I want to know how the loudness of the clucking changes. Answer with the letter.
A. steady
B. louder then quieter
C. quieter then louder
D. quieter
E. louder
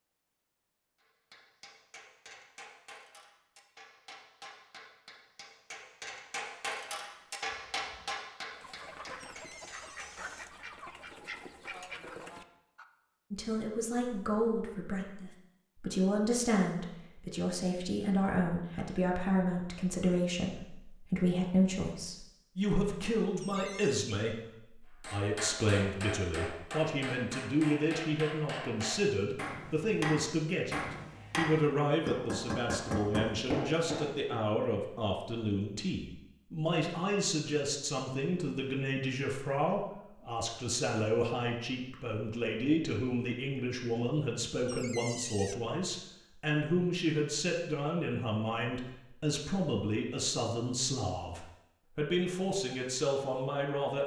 E.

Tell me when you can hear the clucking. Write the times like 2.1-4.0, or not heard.
7.5-12.8.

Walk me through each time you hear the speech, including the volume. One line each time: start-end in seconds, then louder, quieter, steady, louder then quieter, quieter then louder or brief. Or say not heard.
13.3-54.0 steady.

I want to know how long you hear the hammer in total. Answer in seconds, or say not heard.
19 s.